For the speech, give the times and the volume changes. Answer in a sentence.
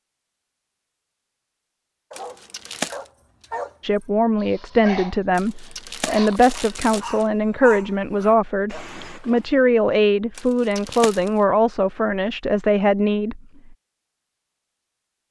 You can hear the speech from 3.8 to 13.8 s, at a steady volume.